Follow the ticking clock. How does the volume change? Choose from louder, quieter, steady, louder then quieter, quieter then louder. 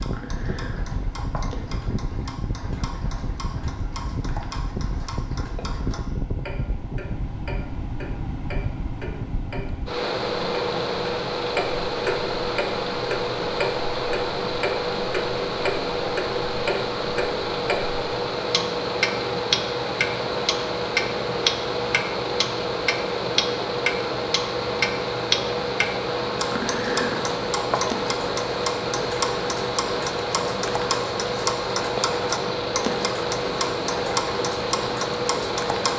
louder.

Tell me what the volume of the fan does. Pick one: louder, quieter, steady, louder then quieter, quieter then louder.
louder.